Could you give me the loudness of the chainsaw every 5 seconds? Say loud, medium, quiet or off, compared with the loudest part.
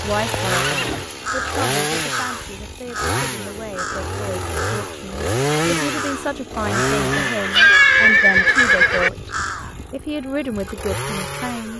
loud, loud, medium.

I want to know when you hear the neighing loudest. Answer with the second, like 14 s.
8 s.